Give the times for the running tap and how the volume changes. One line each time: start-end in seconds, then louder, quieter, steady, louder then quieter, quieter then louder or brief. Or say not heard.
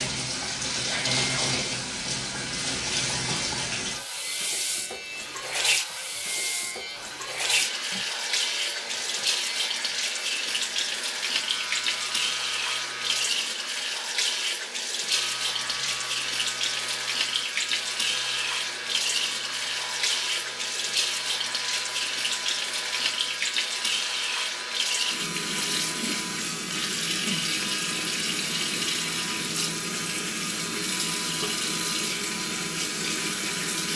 0.0-33.9 steady.